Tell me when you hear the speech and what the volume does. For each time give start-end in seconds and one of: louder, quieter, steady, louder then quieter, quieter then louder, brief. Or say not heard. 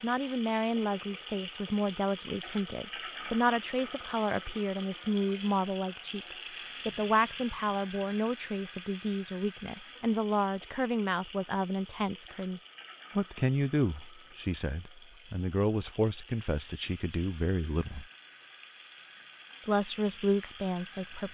0.0-18.1 steady
19.6-21.2 brief.